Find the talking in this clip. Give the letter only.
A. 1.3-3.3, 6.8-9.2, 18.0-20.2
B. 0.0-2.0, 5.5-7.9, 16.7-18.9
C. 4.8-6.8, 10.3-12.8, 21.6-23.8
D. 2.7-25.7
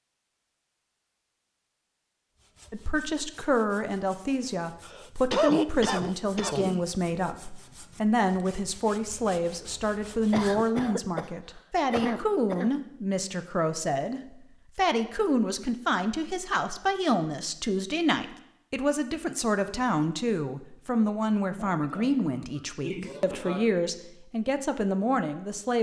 D.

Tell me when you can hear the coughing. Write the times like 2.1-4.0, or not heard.
4.8-6.8, 10.3-12.8, 21.6-23.8.